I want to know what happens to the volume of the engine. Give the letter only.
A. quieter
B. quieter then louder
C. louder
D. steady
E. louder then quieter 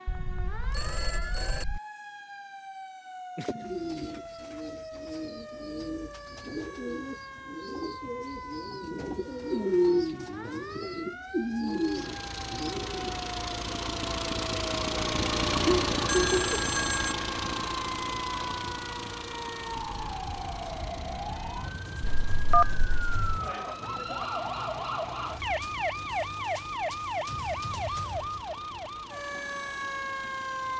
A.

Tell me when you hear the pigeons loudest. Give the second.
10 s.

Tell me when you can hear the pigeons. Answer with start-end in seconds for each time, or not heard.
3.5-13.2.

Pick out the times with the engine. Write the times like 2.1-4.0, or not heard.
11.6-30.7.